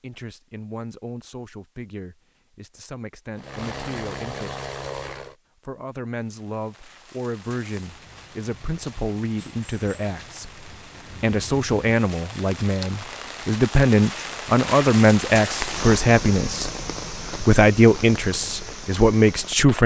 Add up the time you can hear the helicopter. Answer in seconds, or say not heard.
2 s.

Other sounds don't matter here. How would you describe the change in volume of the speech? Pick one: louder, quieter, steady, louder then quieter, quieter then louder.
louder.